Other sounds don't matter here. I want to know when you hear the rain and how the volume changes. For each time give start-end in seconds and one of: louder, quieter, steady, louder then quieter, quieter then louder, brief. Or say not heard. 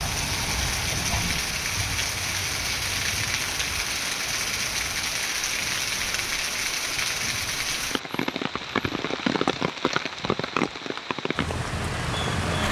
0.0-12.6 steady.